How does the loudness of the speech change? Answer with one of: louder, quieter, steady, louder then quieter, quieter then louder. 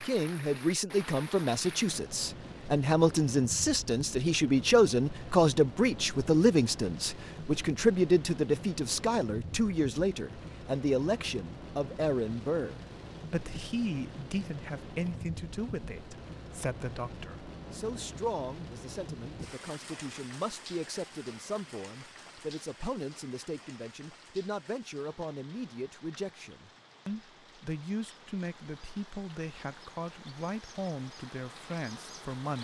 quieter.